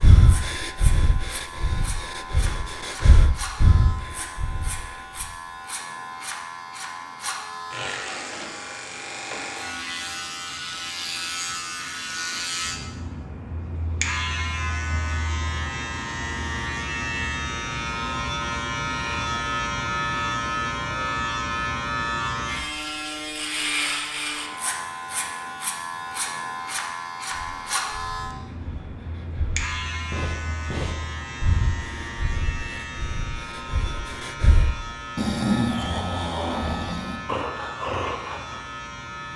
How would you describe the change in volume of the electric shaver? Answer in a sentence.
The volume of the electric shaver goes up, then down.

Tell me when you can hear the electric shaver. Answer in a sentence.
The electric shaver can be heard from 0.0 to 39.3 s.